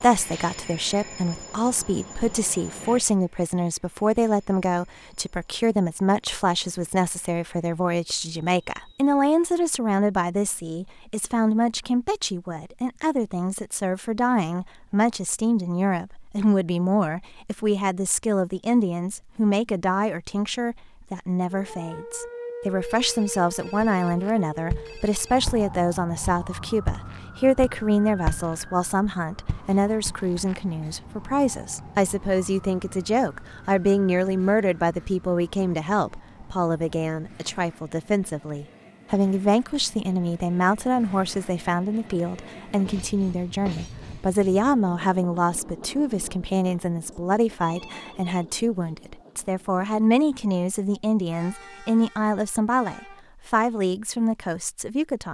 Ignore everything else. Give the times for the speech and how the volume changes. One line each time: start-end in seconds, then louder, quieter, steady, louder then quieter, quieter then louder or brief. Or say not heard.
0.0-55.2 steady.